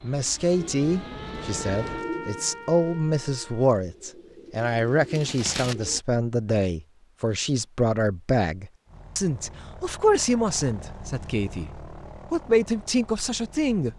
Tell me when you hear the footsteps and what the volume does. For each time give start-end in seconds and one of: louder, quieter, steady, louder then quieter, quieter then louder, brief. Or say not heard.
not heard.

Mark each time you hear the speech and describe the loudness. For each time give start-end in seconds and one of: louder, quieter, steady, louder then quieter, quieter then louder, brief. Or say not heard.
0.0-13.9 steady.